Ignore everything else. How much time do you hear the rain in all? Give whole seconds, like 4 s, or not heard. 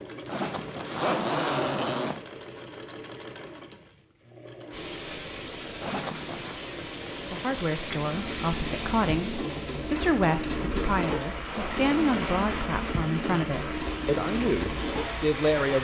11 s.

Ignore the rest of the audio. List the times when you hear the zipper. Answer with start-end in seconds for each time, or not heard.
0.2-2.2, 5.8-6.6, 10.8-12.4.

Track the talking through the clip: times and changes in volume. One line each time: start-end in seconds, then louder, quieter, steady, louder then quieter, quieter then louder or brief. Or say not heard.
7.3-15.8 steady.